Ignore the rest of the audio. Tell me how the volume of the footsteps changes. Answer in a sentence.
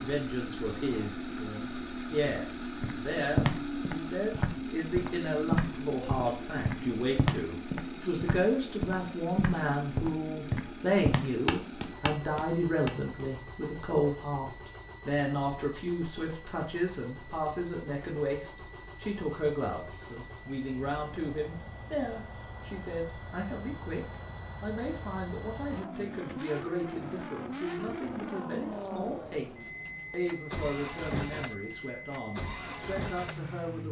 The volume of the footsteps stays about the same.